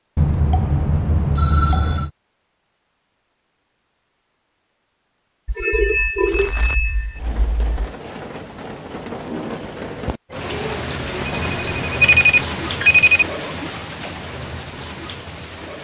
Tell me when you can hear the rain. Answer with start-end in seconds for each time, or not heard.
6.2-15.7.